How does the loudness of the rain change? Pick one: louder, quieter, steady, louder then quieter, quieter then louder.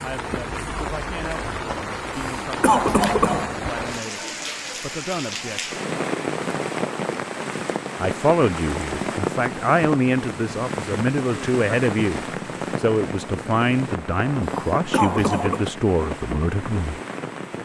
steady.